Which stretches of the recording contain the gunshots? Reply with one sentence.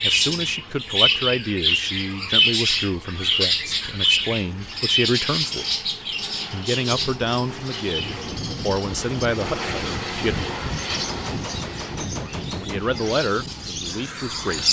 You can hear the gunshots from 10.9 to 12.8 s.